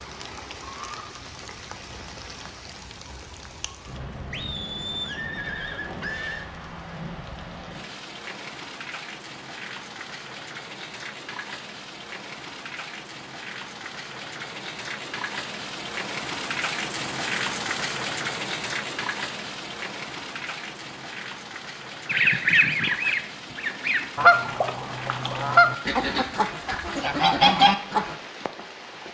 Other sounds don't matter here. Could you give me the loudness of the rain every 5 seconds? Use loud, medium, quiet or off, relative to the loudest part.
medium, medium, medium, loud, medium, medium.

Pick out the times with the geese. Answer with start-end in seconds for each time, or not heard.
22.1-28.1.